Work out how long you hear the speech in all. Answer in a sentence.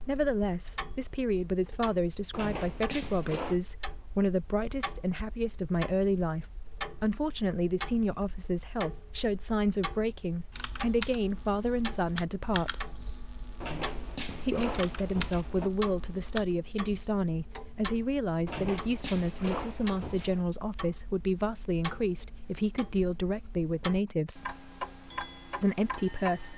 The speech can be heard for 24 seconds in total.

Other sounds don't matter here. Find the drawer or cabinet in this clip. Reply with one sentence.
The drawer or cabinet can be heard from 2.3 to 3.6 s, from 13.6 to 15.7 s and from 18.4 to 20.4 s.